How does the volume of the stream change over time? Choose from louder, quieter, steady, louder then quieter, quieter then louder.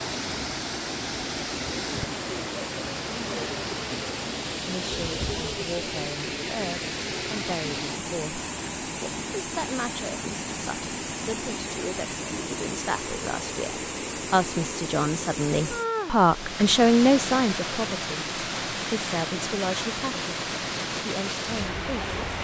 steady.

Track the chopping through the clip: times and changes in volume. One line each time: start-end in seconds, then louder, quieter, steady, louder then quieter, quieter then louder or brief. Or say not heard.
not heard.